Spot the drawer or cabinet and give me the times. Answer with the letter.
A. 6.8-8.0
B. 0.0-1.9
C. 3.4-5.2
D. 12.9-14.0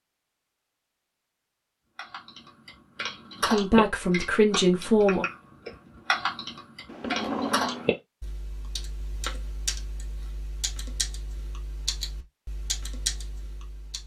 A.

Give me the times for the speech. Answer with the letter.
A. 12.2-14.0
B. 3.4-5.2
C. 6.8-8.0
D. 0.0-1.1
B.